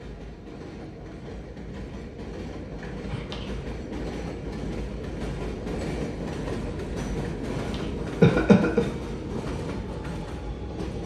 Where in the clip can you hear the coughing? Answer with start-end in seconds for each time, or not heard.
2.8-3.5, 7.5-8.8.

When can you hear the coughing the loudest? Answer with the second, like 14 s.
8 s.